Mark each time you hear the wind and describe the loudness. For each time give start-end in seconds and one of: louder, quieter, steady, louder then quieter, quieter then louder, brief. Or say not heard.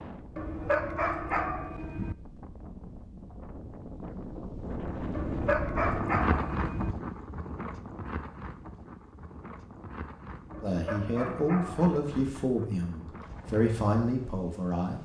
0.0-15.0 louder then quieter.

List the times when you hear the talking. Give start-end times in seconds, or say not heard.
10.6-15.0.